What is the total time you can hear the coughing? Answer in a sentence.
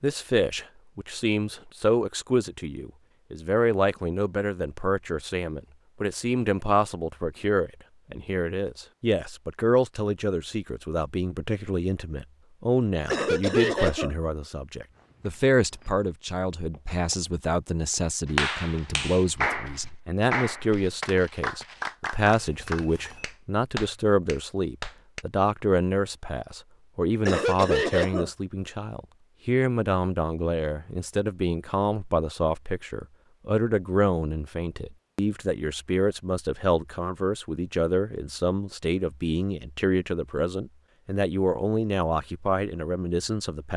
The coughing can be heard for 2 seconds in total.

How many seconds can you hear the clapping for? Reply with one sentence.
The clapping can be heard for 7 seconds in total.